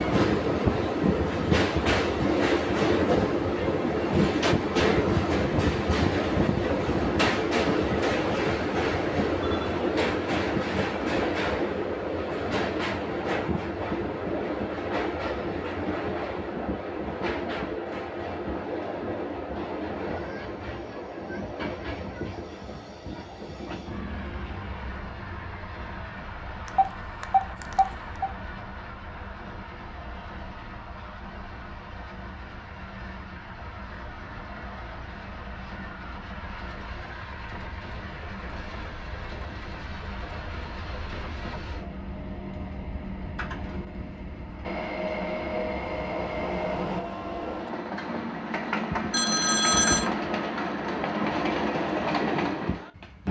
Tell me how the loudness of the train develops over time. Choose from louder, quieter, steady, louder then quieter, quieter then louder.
quieter then louder.